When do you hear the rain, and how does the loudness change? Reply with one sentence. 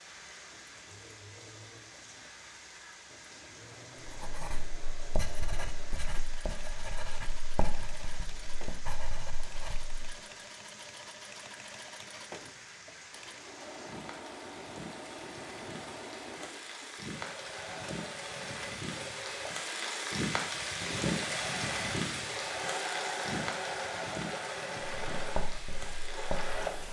The rain can be heard from 0.0 to 26.8 s, getting louder.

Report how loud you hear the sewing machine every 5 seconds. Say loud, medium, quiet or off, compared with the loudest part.
quiet, quiet, medium, medium, loud, loud.